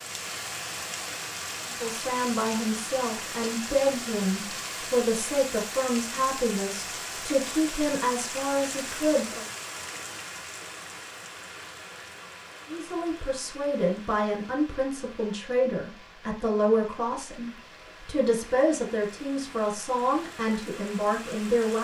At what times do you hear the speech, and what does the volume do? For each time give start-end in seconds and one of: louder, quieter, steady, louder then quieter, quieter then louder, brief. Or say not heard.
1.6-9.4 steady
12.7-21.7 steady.